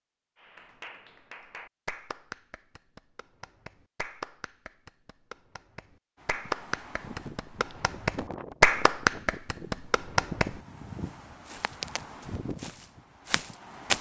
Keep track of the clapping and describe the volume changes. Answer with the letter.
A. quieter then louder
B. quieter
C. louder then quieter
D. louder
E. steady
D.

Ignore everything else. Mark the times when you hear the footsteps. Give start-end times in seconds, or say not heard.
11.4-13.9.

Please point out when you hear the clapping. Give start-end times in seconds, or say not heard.
0.4-10.6.